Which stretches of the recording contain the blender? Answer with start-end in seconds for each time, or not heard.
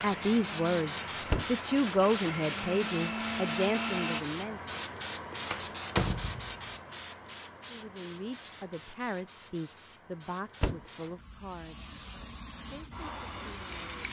0.0-4.2.